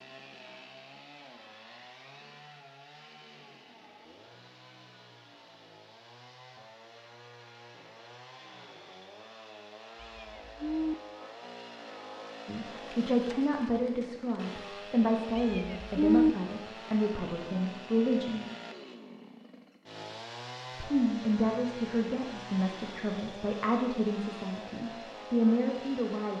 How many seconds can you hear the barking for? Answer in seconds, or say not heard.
not heard.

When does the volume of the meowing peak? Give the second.
16 s.